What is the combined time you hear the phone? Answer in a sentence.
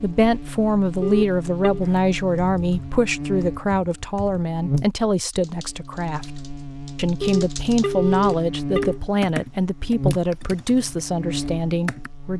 You can hear the phone for 3 seconds altogether.